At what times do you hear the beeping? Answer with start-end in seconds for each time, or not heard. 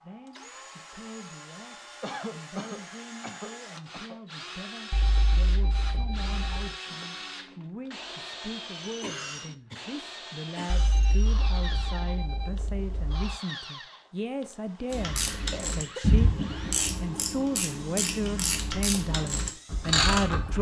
4.9-6.8, 10.7-13.3.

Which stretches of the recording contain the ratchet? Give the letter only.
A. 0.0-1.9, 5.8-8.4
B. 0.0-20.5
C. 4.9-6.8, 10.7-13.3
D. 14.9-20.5
D.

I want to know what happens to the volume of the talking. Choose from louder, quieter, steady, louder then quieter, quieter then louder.
louder.